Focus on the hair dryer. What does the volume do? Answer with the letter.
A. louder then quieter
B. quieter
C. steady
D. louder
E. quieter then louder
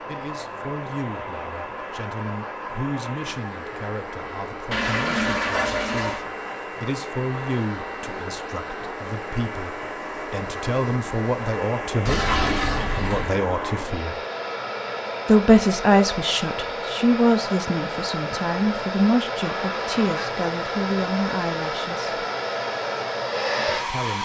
D.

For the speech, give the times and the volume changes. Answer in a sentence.
The speech can be heard from 0.0 to 14.2 s, getting louder; from 15.2 to 22.2 s, getting quieter; and briefly from 23.8 to 24.2 s.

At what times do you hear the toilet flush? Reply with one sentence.
You can hear the toilet flush from 4.7 to 6.2 s, from 12.1 to 13.3 s and from 19.6 to 20.4 s.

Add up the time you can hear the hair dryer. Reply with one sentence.
The hair dryer can be heard for 24 seconds in total.